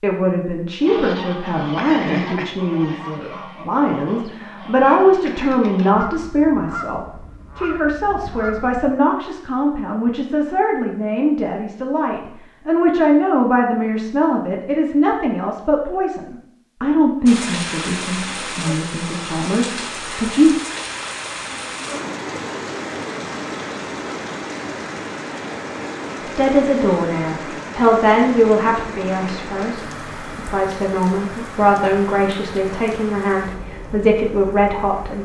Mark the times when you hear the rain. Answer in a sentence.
The rain can be heard from 17.2 to 35.1 s.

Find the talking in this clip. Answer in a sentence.
The talking can be heard from 0.0 to 20.6 s and from 26.2 to 35.1 s.